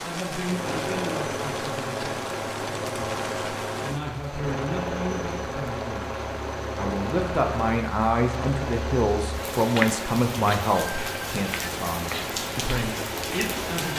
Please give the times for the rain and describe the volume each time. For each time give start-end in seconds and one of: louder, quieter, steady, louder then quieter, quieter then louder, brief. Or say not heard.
0.0-13.9 quieter then louder.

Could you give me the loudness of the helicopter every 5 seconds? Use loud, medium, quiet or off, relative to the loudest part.
loud, loud, medium.